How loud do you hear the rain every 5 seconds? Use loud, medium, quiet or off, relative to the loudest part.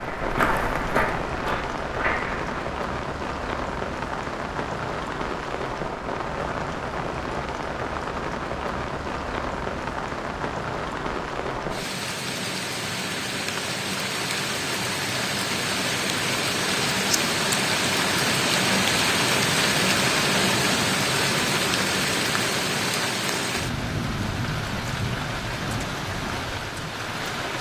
medium, medium, medium, loud, loud, medium.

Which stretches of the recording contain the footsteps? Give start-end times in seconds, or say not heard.
0.0-2.5.